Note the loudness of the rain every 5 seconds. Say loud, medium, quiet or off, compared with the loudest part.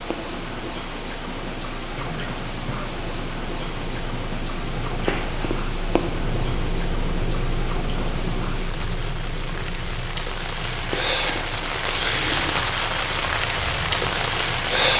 medium, medium, loud.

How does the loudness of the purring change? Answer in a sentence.
The loudness of the purring goes up, then down.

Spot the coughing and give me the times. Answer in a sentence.
The coughing can be heard from 1.9 to 3.0 s.